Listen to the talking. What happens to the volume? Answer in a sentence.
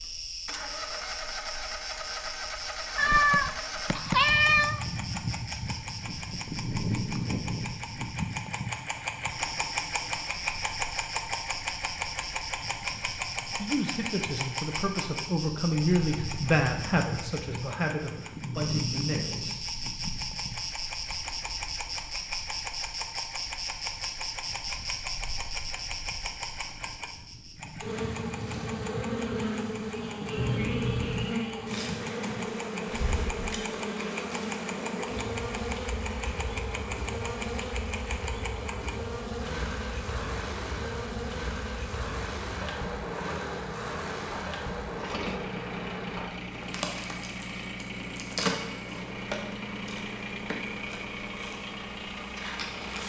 The volume of the talking goes up, then down.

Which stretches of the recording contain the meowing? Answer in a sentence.
The meowing can be heard from 3.0 to 4.8 s and from 30.4 to 31.4 s.